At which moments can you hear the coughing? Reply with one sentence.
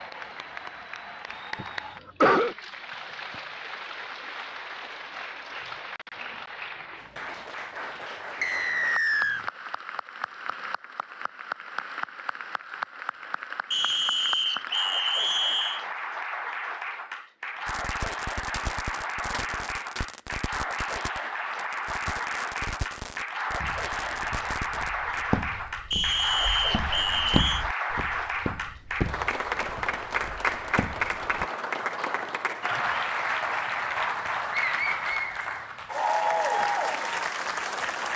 You can hear the coughing from 1.6 to 2.5 s.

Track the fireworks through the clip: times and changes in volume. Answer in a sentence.
You can hear the fireworks from 17.6 to 25.2 s, at a steady volume.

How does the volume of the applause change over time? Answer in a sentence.
The volume of the applause goes up.